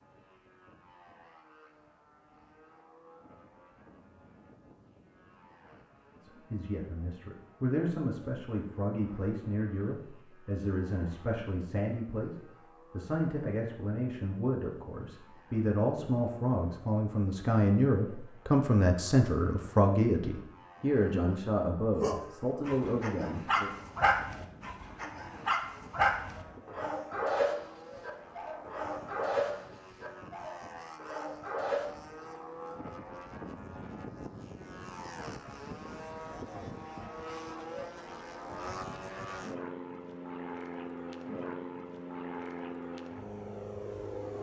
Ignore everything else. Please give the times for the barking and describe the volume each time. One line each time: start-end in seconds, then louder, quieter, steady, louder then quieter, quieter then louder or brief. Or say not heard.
22.0-31.9 quieter.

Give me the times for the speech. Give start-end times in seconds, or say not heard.
6.2-23.7.